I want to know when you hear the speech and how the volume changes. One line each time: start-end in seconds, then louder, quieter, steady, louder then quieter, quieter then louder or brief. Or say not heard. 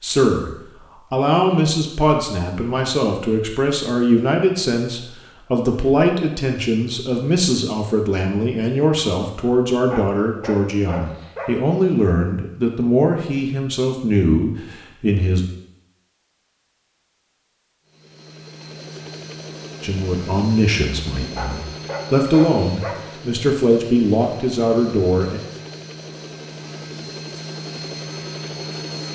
0.0-15.4 steady
19.8-25.4 quieter then louder.